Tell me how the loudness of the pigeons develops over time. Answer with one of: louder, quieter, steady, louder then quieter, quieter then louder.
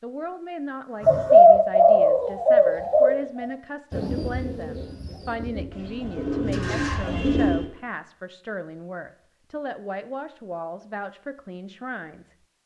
quieter then louder.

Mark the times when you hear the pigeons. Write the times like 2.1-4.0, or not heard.
1.0-7.7.